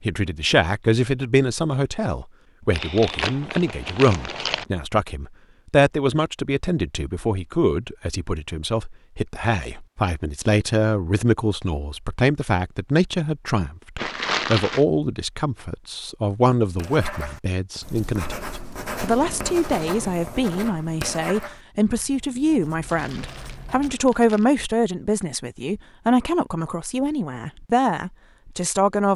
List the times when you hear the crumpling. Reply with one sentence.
You can hear the crumpling from 2.7 to 4.7 s, from 13.9 to 14.8 s and from 22.9 to 24.6 s.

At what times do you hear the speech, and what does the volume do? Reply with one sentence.
You can hear the speech from 0.0 to 29.1 s, at a steady volume.